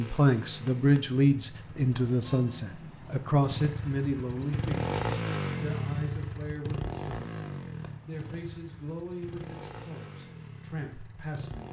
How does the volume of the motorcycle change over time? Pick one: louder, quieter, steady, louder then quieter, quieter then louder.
louder then quieter.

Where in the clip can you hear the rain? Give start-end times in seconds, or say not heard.
not heard.